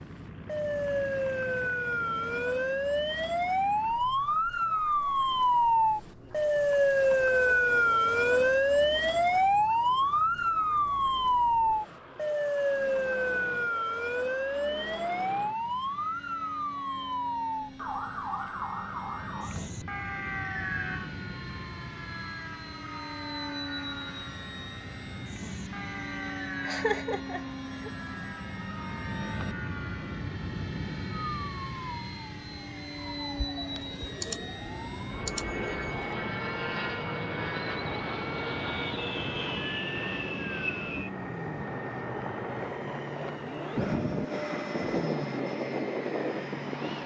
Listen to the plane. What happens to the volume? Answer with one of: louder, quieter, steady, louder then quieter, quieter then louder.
louder.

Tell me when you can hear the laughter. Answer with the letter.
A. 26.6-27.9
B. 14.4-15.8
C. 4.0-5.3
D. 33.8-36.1
A.